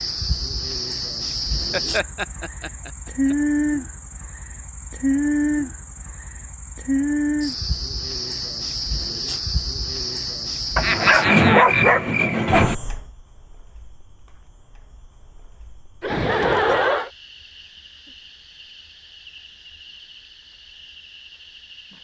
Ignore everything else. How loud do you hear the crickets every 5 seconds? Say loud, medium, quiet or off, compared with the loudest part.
loud, loud, loud, quiet, quiet.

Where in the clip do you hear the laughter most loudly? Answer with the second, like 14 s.
17 s.